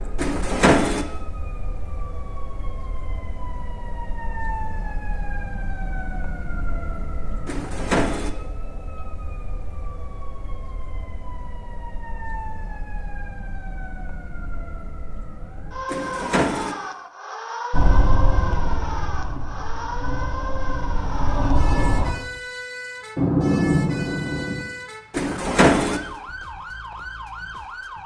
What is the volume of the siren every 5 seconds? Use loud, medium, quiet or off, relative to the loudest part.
medium, medium, medium, loud, loud, loud.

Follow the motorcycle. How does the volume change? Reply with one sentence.
The volume of the motorcycle goes down, then up.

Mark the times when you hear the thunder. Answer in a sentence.
The thunder can be heard from 23.1 to 24.6 s.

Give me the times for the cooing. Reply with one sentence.
The cooing can be heard from 0.1 to 1.1 s, from 7.5 to 8.3 s, from 15.8 to 16.8 s and from 25.1 to 26.0 s.